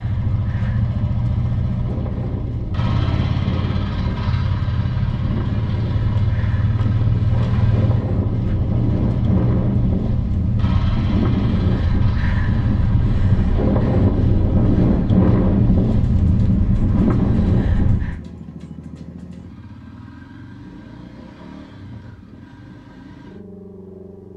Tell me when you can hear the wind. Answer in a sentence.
The wind can be heard from 0.0 to 18.2 s.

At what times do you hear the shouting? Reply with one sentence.
The shouting can't be heard in this clip.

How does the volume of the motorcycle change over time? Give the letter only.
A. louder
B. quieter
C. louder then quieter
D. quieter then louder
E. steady
B.